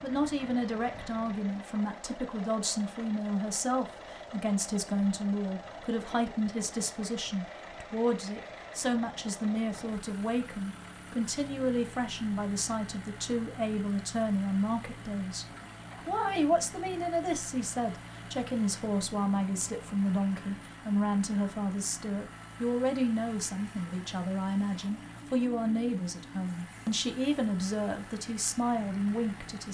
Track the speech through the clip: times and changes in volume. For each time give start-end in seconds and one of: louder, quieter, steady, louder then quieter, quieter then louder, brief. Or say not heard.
0.0-29.6 steady.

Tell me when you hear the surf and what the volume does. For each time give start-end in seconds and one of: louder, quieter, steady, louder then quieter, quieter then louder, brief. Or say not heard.
not heard.